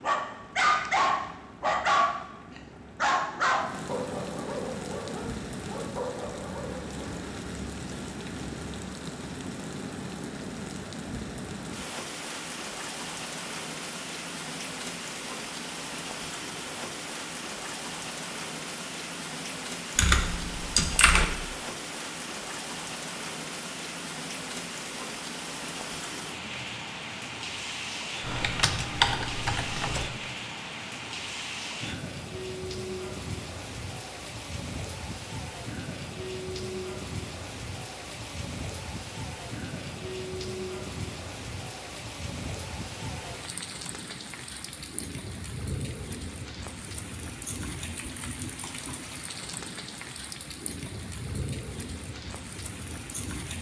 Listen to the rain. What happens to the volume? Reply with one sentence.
The volume of the rain stays about the same.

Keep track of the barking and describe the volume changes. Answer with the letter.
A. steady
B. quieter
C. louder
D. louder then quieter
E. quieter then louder
B.